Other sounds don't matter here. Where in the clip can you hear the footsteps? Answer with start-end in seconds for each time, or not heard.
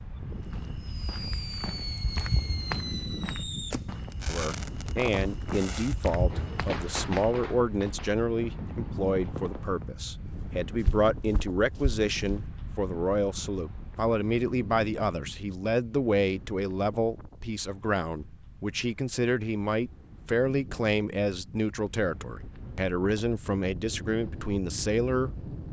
0.3-7.3, 10.3-12.4.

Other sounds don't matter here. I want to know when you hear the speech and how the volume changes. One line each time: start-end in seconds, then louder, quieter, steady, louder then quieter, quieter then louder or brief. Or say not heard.
4.2-25.3 steady.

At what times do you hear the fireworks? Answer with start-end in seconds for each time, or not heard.
0.8-9.9.